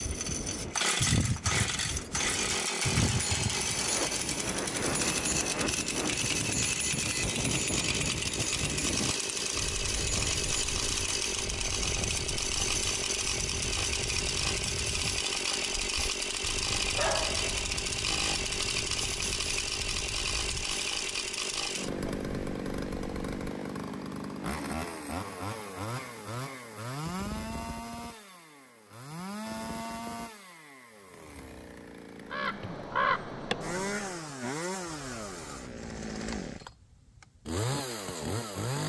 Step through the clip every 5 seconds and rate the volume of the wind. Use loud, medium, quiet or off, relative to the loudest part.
loud, loud, medium, quiet, quiet, off, off, off.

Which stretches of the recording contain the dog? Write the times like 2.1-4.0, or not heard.
16.9-17.6.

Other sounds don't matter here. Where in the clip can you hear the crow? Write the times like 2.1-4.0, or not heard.
32.2-34.2.